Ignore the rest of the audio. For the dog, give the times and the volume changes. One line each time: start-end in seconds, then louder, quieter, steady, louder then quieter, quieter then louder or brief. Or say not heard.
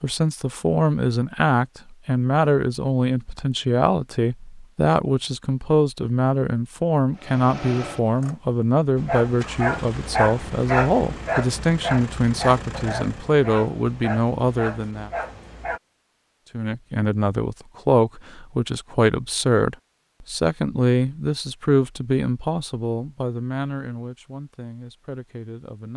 8.9-15.8 quieter.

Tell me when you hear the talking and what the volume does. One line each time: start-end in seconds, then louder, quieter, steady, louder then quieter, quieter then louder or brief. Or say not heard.
0.0-15.1 steady
16.5-25.9 quieter.